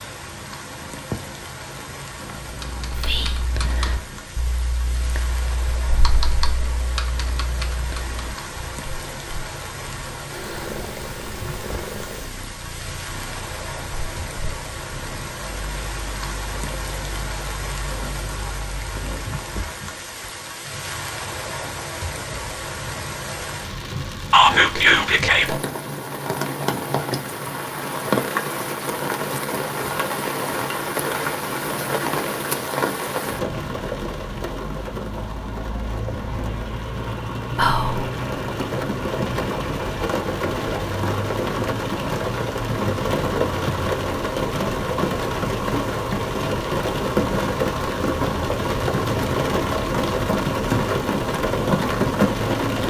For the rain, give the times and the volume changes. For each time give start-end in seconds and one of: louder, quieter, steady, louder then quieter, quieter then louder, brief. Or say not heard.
0.0-52.8 louder.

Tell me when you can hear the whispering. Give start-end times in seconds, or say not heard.
2.9-3.5, 24.3-25.6, 37.5-38.0.